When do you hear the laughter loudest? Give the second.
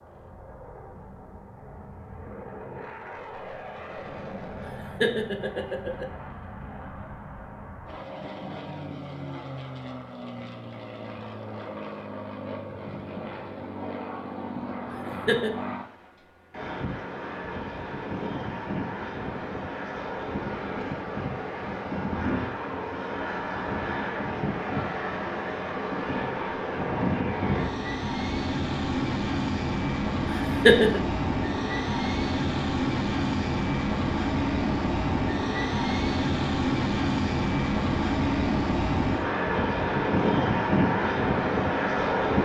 31 s.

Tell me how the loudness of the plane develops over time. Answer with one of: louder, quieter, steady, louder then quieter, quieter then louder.
louder.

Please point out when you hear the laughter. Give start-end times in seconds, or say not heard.
4.8-6.0, 15.1-15.6, 30.4-31.0.